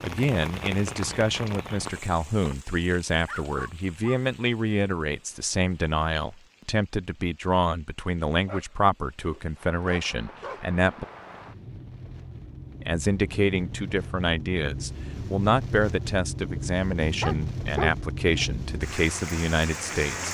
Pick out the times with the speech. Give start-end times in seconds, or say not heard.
0.0-11.1, 12.8-20.2.